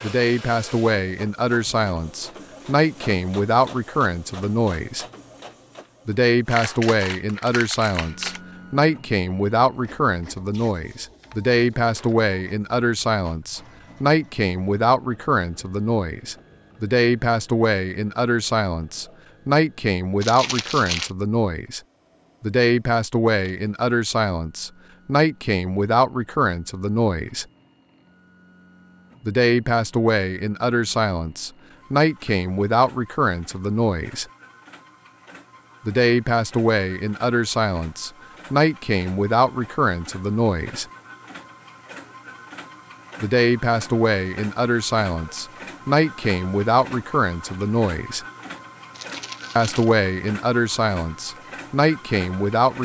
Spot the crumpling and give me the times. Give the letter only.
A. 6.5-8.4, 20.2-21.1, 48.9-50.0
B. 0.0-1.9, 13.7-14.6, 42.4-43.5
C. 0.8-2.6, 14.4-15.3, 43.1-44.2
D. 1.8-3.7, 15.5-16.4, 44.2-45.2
A.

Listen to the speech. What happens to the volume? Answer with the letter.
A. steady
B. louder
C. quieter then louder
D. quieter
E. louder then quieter
A.